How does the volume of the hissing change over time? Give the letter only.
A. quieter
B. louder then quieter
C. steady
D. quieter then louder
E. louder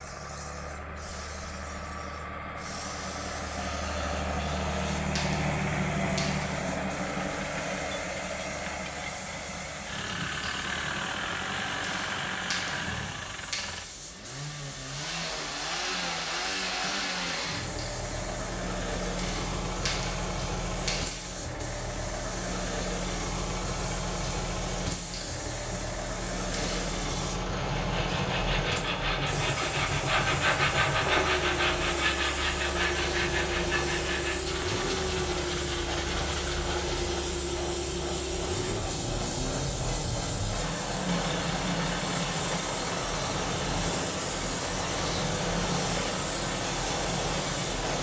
E.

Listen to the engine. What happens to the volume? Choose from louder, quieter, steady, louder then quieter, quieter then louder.
steady.